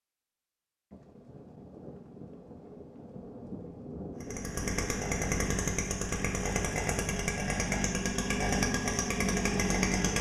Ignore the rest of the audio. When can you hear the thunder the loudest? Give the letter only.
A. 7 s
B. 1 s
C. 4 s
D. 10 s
C.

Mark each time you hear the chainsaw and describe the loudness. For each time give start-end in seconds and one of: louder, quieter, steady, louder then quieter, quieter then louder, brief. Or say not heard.
4.2-10.1 steady.